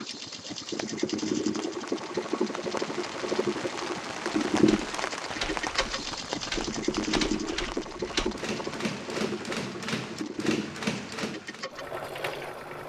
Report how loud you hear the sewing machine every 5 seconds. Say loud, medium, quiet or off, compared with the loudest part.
loud, loud, medium.